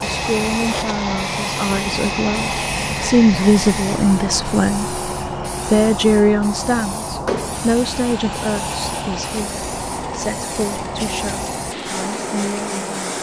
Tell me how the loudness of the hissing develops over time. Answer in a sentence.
The loudness of the hissing stays about the same.